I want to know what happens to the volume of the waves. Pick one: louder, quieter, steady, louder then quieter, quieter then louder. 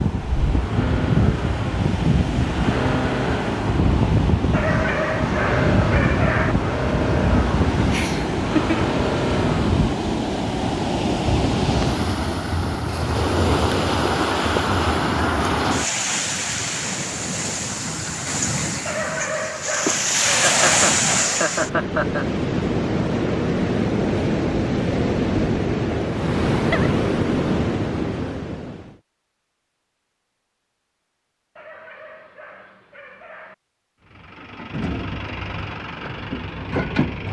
steady.